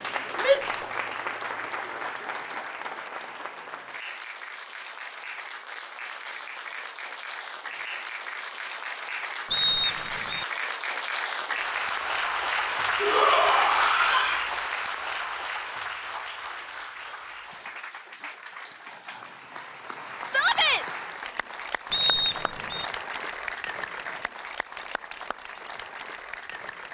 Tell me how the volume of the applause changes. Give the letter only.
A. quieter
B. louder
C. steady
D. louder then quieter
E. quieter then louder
D.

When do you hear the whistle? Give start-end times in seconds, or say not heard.
9.5-10.4, 21.9-22.9.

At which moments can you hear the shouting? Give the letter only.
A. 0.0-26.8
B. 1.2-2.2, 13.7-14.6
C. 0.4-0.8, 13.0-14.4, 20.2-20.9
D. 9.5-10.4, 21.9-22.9
C.